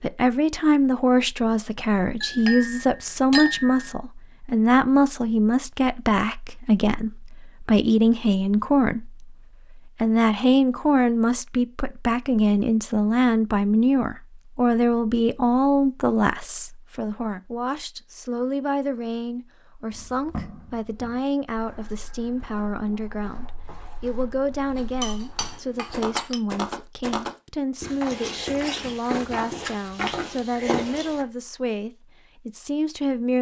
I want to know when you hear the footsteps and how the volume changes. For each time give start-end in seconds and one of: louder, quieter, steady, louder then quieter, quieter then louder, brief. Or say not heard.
19.9-31.2 quieter then louder.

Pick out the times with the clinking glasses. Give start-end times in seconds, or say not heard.
2.2-4.0, 24.8-26.4.